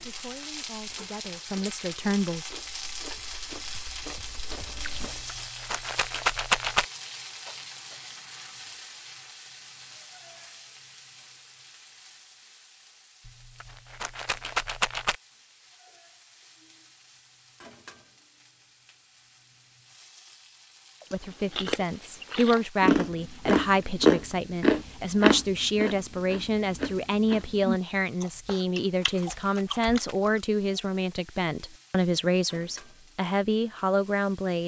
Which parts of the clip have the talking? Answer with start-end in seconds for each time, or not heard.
0.0-2.5, 21.1-34.6.